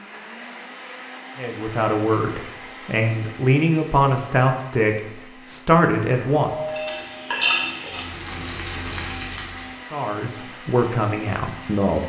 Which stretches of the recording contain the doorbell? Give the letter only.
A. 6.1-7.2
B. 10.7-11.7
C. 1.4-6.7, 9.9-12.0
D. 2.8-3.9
A.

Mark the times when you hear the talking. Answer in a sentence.
You can hear the talking from 1.4 to 6.7 s and from 9.9 to 12.0 s.